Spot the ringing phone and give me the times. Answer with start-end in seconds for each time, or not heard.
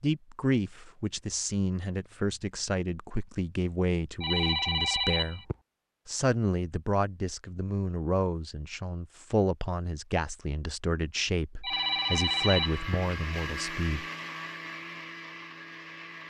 4.2-5.5, 11.6-12.9.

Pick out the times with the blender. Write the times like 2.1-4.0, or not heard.
11.7-16.2.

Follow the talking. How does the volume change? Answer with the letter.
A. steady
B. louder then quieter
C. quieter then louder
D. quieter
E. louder
A.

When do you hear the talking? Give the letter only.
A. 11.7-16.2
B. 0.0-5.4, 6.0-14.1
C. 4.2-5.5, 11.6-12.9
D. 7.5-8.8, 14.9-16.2
B.